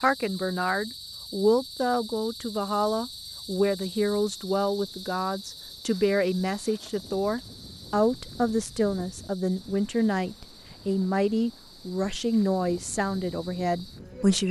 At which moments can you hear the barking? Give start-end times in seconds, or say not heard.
not heard.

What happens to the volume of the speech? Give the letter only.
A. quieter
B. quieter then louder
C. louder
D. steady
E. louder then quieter
D.